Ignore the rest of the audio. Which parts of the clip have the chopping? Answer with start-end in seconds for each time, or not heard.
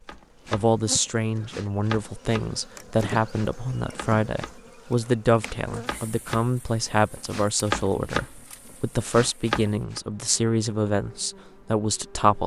0.1-10.0.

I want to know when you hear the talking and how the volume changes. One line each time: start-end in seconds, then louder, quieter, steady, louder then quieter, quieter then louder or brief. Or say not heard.
0.5-12.4 steady.